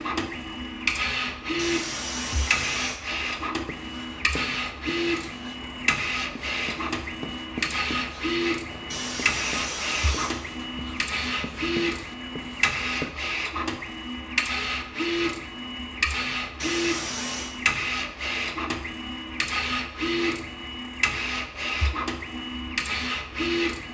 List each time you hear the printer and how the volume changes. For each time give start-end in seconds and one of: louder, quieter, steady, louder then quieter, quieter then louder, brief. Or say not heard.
0.0-23.9 steady.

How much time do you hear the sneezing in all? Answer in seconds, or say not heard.
4 s.